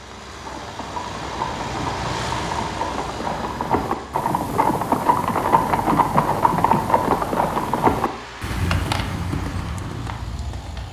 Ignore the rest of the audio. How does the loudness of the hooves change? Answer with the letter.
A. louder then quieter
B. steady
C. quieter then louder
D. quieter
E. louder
A.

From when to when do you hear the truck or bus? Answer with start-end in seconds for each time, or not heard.
0.0-10.8.